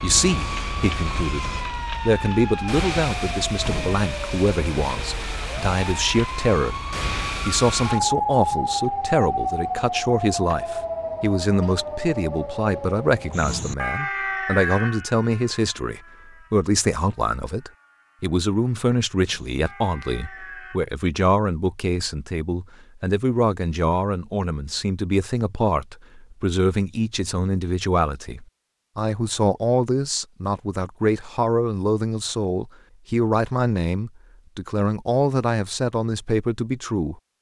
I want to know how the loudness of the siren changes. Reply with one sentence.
The volume of the siren goes down.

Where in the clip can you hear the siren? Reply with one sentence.
You can hear the siren from 0.0 to 20.8 s.